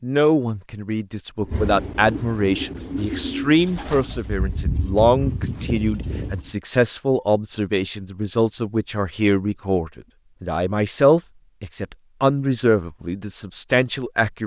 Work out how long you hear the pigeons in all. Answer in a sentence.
The pigeons can be heard for 5 seconds in total.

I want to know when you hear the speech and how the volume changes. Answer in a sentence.
The speech can be heard from 0.0 to 14.4 s, at a steady volume.